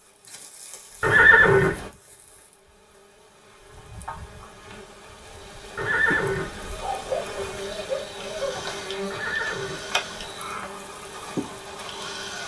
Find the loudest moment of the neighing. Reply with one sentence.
The loudest moment of the neighing is at 1 second.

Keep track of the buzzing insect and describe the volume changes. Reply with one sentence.
The loudness of the buzzing insect goes up.